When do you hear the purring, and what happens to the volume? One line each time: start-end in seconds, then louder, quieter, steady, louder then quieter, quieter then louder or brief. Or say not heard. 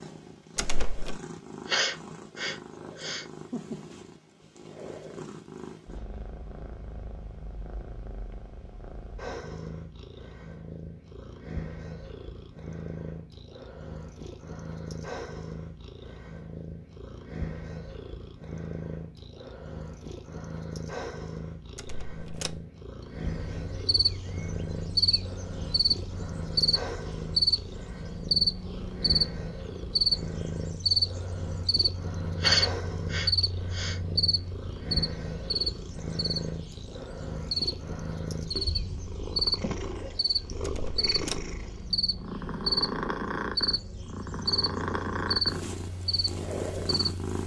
0.0-47.4 louder.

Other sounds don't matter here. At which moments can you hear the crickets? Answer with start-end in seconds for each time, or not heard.
23.1-47.4.